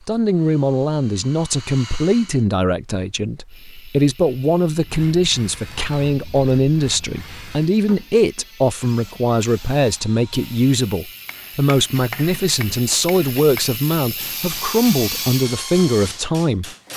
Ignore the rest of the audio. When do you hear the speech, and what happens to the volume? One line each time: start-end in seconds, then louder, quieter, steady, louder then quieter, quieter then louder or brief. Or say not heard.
0.1-16.7 steady.